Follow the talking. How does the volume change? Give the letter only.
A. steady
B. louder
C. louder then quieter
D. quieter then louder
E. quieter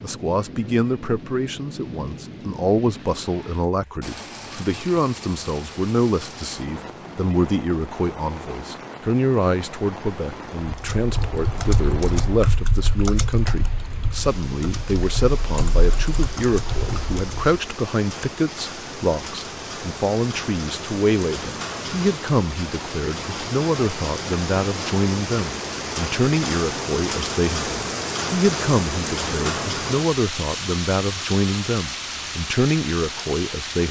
A.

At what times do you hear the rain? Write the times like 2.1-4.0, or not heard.
0.0-33.8.